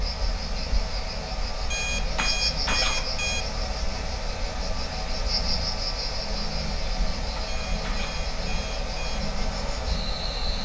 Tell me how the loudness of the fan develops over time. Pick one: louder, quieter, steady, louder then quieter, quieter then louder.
steady.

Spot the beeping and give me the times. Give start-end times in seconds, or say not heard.
1.6-3.5, 7.5-9.2.